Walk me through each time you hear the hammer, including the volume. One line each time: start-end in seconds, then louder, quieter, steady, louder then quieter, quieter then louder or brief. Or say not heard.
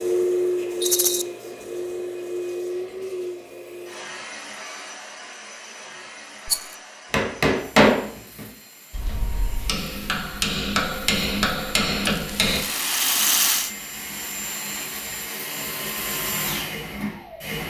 7.1-12.6 quieter then louder.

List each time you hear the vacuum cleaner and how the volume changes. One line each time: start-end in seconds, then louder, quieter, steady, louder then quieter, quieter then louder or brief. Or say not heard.
0.0-17.6 quieter then louder.